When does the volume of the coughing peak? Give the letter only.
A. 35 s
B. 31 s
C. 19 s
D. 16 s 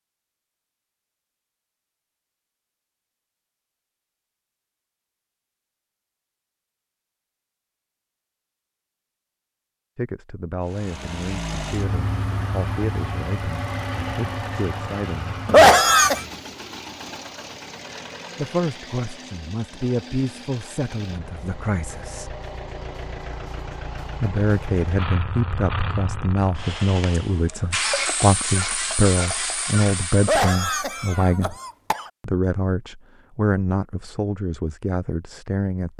D.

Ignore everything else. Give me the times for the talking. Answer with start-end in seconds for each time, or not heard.
9.9-15.8, 18.4-22.4, 24.2-31.6, 32.2-35.9.